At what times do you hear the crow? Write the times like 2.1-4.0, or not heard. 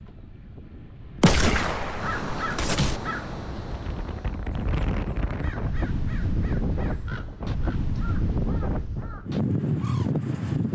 1.9-10.2.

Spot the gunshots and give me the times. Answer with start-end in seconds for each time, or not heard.
1.2-3.0.